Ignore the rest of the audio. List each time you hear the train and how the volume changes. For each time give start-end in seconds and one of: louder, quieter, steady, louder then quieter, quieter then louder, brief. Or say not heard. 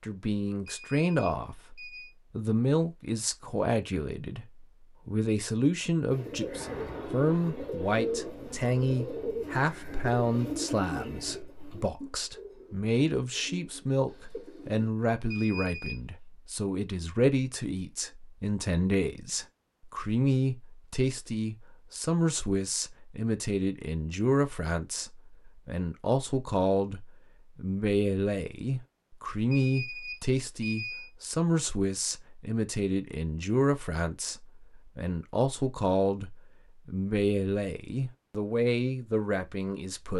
not heard.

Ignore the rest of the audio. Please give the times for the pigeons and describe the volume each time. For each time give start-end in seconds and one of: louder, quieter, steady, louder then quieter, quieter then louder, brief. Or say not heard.
6.1-14.9 quieter.